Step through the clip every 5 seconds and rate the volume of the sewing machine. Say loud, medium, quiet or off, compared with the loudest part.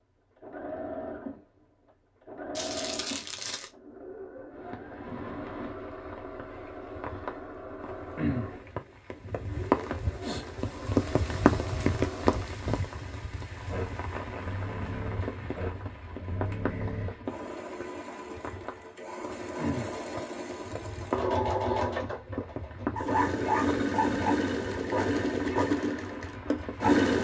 quiet, quiet, quiet, quiet, loud, loud.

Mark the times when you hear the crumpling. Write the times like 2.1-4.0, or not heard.
2.5-3.7.